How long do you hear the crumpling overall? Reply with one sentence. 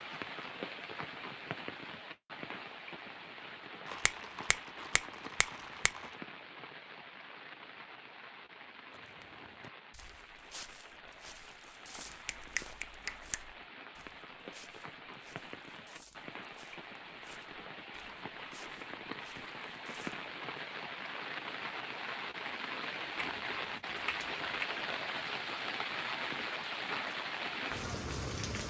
You can hear the crumpling for 2 seconds altogether.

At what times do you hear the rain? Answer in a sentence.
You can hear the rain from 0.0 to 28.6 s.